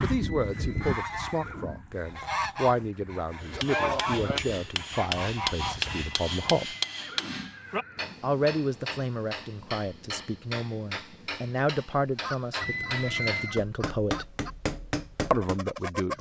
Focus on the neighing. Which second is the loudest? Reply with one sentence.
The volume of the neighing peaks at 13 seconds.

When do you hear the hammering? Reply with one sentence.
The hammering can be heard from 3.4 to 15.6 s.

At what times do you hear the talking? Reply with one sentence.
The talking can be heard from 0.0 to 6.8 s, from 8.2 to 14.2 s and from 15.3 to 16.1 s.